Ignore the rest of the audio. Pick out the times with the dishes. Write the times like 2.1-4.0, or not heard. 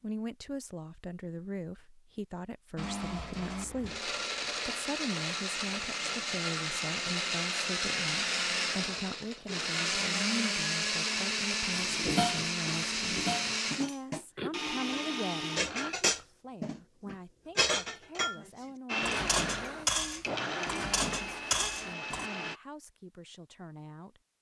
11.7-22.3.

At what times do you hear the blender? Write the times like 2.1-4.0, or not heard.
2.8-15.9, 18.9-22.6.